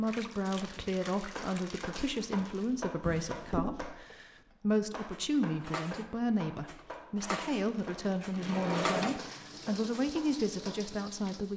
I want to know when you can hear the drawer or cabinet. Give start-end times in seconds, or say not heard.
3.0-3.8, 8.3-9.2.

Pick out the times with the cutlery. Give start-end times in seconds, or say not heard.
5.1-10.1.